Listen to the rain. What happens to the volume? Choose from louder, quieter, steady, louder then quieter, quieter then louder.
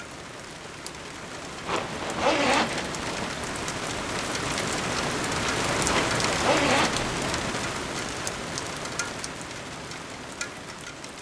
louder then quieter.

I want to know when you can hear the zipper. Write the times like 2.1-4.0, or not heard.
1.6-3.3, 5.8-7.5.